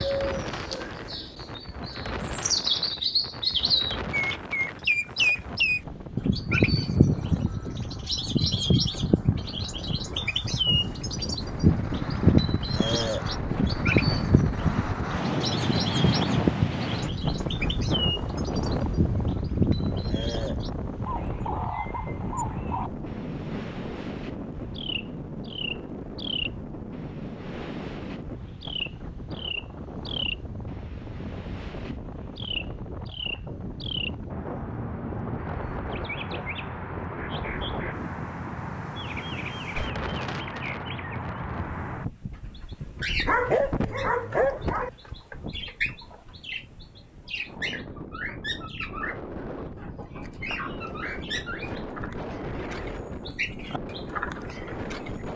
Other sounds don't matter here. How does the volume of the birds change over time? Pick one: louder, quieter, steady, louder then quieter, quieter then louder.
quieter.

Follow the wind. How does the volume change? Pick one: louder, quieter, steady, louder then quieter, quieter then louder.
louder then quieter.